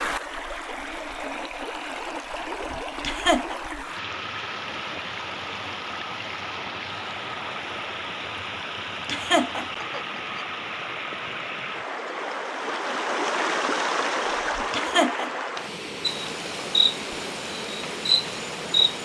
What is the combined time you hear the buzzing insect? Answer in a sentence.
The buzzing insect can be heard for 3 seconds in total.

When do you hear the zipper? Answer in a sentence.
The zipper can't be heard in this clip.